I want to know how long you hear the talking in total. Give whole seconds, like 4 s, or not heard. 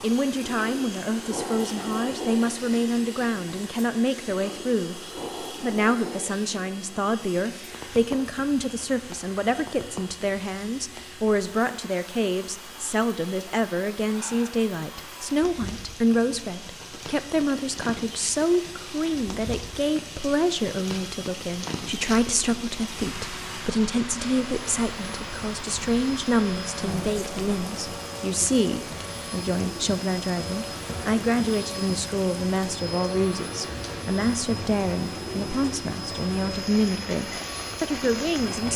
38 s.